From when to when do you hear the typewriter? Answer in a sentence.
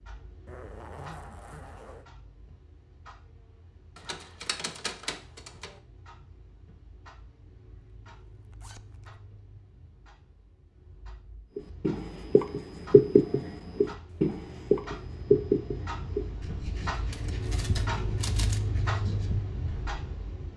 You can hear the typewriter from 4.0 to 5.8 s and from 17.1 to 18.6 s.